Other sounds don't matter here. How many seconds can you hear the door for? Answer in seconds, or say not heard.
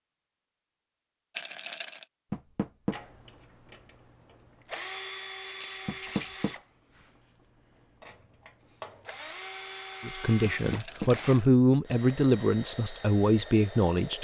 2 s.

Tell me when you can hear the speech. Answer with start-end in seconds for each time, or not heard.
10.0-14.1.